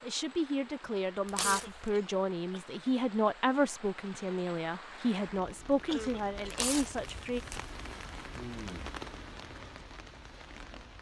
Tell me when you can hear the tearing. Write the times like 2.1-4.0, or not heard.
1.2-1.8, 6.5-7.6.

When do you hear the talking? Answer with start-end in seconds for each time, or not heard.
0.0-7.4.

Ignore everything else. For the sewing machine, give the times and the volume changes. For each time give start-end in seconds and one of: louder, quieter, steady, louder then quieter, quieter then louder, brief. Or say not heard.
not heard.